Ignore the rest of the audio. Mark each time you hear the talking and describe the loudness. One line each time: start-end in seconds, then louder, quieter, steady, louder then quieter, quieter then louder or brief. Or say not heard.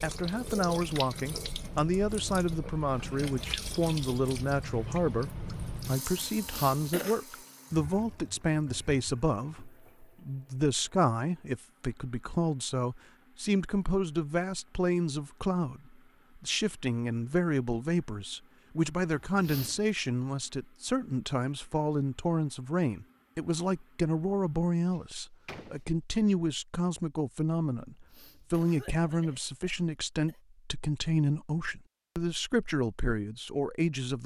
0.0-34.2 steady.